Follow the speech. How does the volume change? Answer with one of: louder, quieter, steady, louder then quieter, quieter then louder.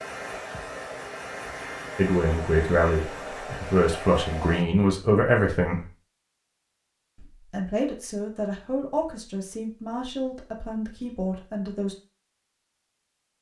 quieter.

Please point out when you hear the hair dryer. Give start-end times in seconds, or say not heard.
0.0-4.7.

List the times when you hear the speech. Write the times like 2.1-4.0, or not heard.
1.9-5.8, 7.2-11.9.